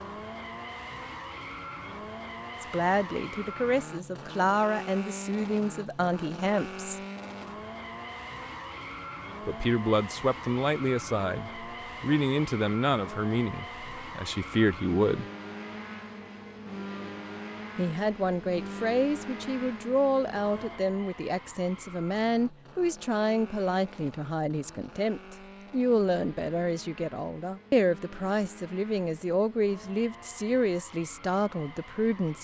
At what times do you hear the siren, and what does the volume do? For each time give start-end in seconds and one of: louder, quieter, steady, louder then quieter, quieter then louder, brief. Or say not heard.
not heard.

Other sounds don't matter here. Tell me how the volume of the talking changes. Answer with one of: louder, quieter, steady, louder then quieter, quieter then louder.
steady.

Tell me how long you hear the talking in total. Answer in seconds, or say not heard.
25 s.